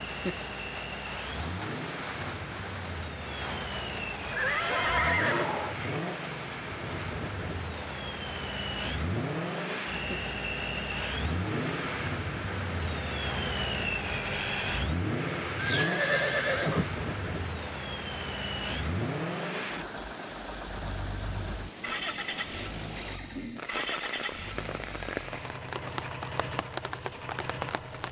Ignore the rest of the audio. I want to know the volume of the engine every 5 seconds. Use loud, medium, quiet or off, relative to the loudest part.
medium, loud, loud, loud, medium, medium.